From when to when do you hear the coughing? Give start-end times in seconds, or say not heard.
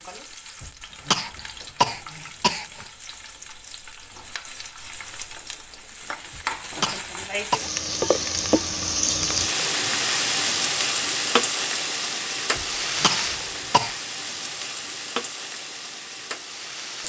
0.6-2.9, 6.3-7.6, 12.6-13.9.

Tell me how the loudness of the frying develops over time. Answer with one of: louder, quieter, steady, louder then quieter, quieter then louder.
louder then quieter.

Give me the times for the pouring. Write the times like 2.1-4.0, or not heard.
not heard.